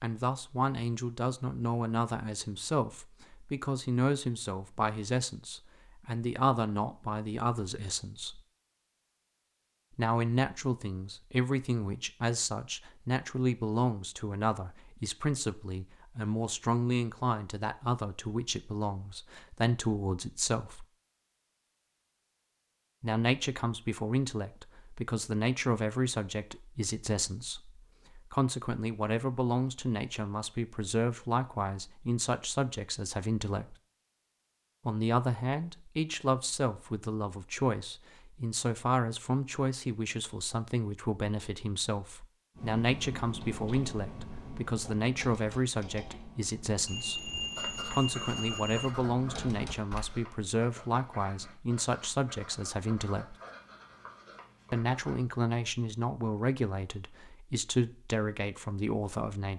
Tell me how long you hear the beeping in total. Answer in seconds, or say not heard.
2 s.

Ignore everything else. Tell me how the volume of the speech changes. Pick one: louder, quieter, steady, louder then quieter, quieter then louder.
steady.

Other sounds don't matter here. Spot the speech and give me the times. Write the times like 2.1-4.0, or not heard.
0.0-8.4, 9.9-20.9, 23.0-33.8, 34.9-53.4, 54.7-59.5.